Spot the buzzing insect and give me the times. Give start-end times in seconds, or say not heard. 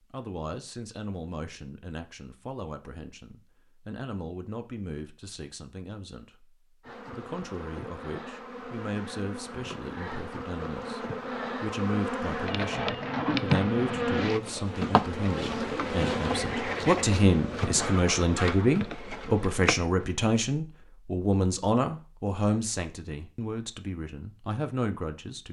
6.8-20.2.